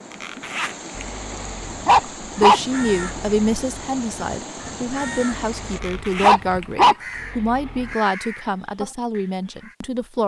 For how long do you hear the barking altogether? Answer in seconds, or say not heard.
5 s.